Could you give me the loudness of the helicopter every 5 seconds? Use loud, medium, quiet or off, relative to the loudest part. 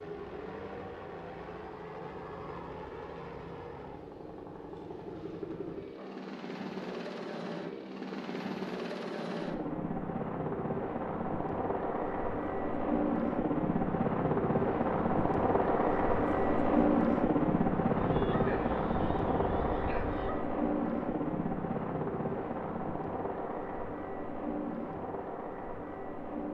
quiet, medium, loud, loud, medium, medium.